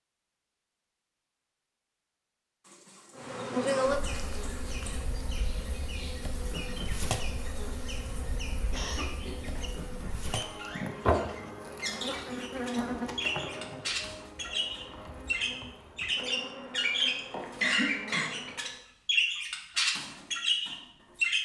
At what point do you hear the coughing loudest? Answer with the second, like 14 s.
18 s.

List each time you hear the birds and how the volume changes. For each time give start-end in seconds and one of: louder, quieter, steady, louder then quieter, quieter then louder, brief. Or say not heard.
4.0-21.4 louder.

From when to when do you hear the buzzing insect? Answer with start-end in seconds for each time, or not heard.
3.1-18.8.